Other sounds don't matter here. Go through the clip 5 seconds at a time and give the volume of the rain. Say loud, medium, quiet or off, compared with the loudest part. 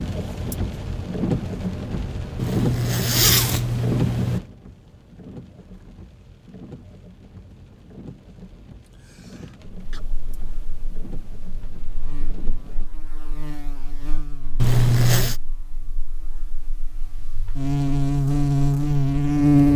loud, quiet, quiet, off.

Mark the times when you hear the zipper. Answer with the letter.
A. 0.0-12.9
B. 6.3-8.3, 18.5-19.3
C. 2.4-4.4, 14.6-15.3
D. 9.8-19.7
C.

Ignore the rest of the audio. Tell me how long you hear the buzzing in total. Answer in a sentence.
The buzzing can be heard for 10 seconds in total.